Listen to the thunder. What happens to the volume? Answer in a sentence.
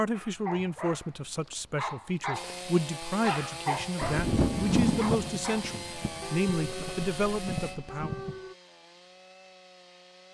The volume of the thunder goes down, then up.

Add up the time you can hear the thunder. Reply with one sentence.
You can hear the thunder for 4 seconds altogether.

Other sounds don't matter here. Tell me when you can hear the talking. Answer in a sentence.
The talking can be heard from 0.0 to 8.2 s.